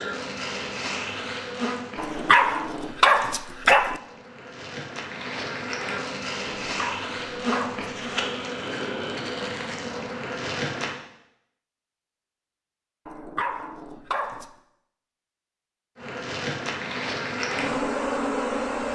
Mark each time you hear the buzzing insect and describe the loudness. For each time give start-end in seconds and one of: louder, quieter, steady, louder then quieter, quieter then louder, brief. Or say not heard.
0.0-10.9 quieter then louder
15.9-18.9 brief.